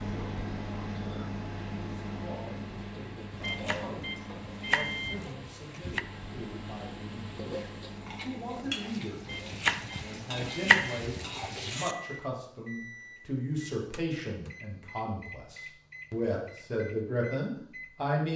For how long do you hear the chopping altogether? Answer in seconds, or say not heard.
5 s.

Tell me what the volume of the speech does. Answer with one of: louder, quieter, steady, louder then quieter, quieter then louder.
louder.